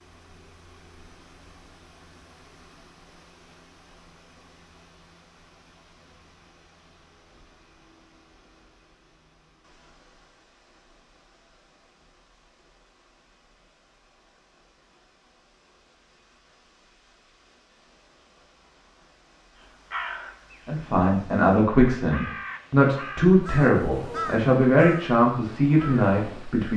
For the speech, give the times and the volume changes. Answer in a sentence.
You can hear the speech from 20.6 to 26.7 s, at a steady volume.